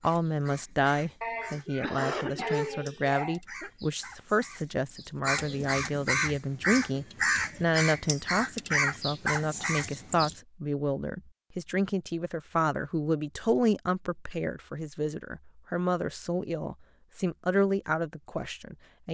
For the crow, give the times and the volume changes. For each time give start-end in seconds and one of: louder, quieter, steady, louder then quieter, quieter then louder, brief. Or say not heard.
0.0-10.3 louder.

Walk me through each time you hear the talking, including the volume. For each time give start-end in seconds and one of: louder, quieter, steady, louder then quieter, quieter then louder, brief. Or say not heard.
0.0-19.0 steady.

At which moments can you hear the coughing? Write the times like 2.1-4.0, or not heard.
1.2-3.7.